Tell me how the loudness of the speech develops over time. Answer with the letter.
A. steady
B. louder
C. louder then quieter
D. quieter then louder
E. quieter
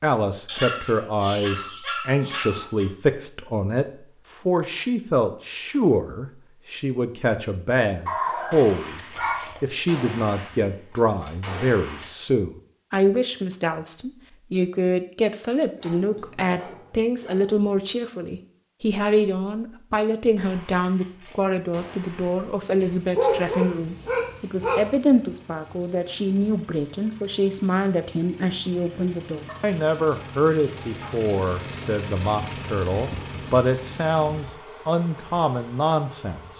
A.